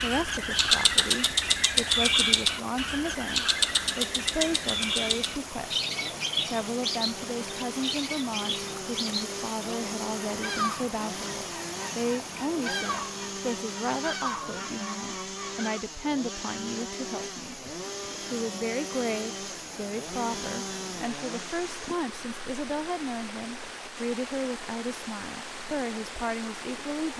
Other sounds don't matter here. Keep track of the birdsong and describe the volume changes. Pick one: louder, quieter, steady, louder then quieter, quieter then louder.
quieter.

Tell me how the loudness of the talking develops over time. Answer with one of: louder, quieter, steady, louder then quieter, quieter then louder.
steady.